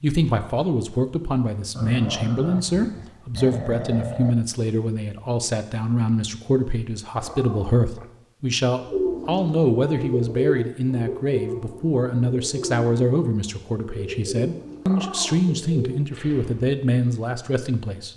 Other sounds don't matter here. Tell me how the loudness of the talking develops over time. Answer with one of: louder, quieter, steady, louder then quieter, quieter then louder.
steady.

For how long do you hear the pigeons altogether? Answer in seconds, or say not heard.
8 s.